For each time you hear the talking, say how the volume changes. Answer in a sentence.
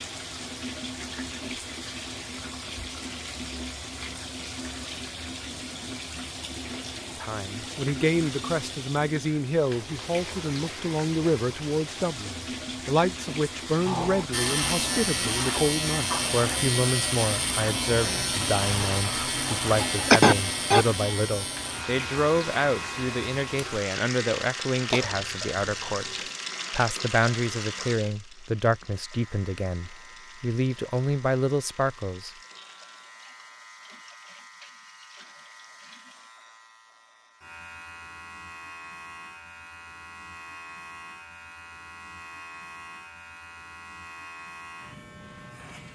The talking can be heard from 7.2 to 32.3 s, at a steady volume.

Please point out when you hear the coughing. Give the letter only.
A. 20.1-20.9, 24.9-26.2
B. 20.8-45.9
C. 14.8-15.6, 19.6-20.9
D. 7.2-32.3
A.